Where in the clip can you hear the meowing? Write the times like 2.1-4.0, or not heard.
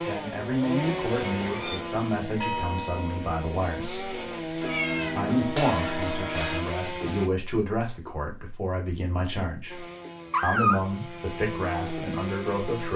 1.3-1.8, 4.7-5.2, 10.3-10.8.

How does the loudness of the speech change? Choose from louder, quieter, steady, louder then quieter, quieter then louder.
steady.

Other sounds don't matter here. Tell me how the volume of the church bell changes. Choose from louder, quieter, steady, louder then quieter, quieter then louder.
quieter then louder.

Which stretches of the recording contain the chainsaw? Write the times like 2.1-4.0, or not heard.
0.0-7.3, 9.7-12.9.